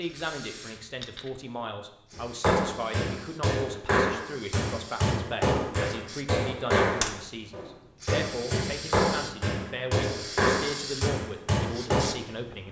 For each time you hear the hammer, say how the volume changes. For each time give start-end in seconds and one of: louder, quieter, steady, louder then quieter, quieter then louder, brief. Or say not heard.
2.1-12.1 steady.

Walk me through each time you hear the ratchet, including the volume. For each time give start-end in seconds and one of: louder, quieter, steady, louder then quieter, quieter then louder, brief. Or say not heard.
not heard.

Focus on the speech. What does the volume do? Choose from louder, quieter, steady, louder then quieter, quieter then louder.
steady.